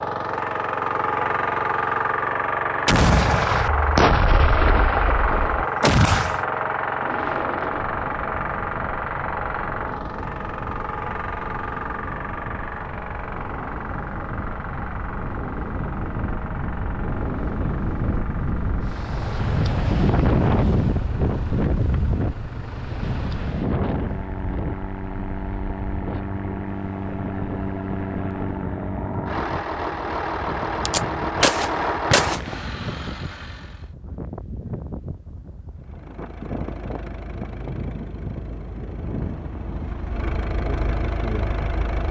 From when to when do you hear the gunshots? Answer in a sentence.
The gunshots can be heard from 2.9 to 6.4 s and from 30.9 to 32.6 s.